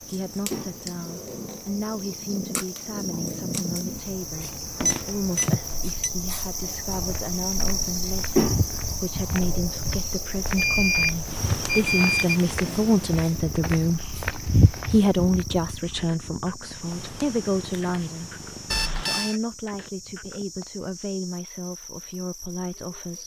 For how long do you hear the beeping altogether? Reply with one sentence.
You can hear the beeping for 4 seconds altogether.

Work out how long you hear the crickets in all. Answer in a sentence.
The crickets can be heard for 23 seconds in total.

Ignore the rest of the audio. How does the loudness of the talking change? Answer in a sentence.
The volume of the talking goes up, then down.